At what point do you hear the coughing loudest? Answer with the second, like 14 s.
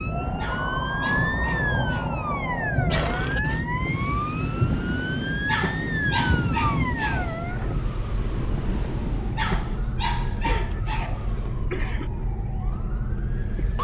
3 s.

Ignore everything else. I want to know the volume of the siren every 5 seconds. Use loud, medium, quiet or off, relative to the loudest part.
loud, loud, medium.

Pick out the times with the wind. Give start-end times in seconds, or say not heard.
0.0-9.7.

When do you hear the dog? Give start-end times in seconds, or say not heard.
0.3-2.1, 5.5-7.6, 9.3-11.9.